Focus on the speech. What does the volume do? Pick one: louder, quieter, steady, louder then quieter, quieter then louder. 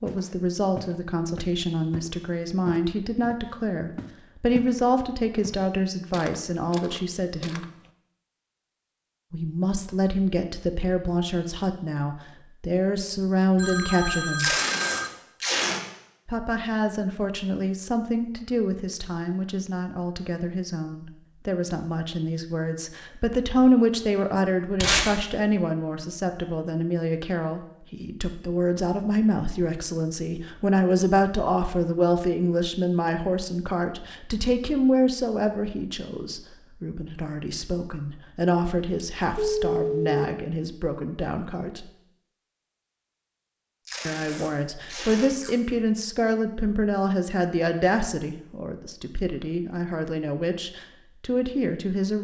steady.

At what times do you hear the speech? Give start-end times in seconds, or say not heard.
0.0-7.7, 9.3-14.6, 16.2-41.9, 44.0-52.1.